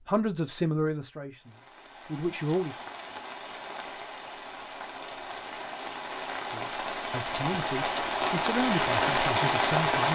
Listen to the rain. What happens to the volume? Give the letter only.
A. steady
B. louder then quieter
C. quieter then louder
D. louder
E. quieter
D.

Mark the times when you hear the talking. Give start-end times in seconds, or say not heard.
0.1-2.8, 6.5-10.1.